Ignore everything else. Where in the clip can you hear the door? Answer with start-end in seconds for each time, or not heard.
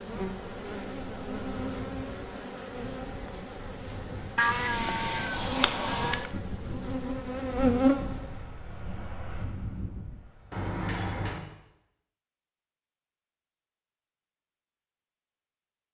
5.0-6.2, 10.5-11.4.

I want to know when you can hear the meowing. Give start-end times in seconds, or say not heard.
4.3-6.3.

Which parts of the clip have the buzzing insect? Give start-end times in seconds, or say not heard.
0.0-8.4.